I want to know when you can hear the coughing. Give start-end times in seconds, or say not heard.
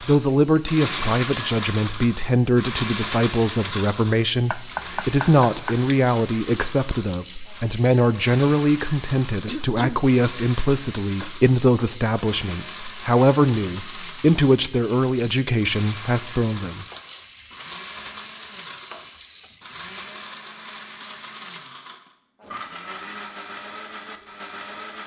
9.4-10.0.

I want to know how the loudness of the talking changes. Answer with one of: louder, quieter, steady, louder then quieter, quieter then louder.
steady.